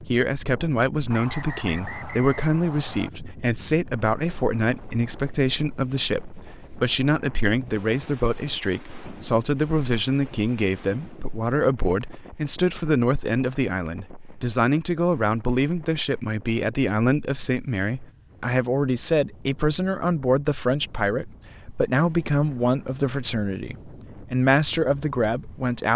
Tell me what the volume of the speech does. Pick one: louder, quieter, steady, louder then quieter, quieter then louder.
steady.